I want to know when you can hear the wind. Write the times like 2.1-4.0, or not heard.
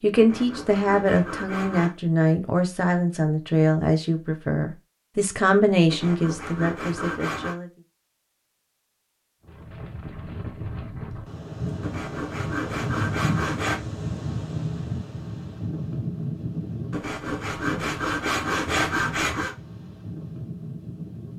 9.4-21.3.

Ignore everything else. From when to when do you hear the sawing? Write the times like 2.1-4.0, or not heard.
0.1-1.9, 5.9-7.5, 11.8-13.8, 16.9-19.6.